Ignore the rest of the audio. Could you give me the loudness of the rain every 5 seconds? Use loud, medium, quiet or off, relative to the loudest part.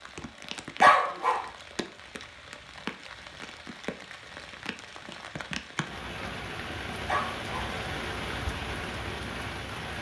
medium, loud.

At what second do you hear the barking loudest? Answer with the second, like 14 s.
1 s.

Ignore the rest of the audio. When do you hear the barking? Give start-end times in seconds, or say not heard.
0.8-1.4, 7.0-7.8.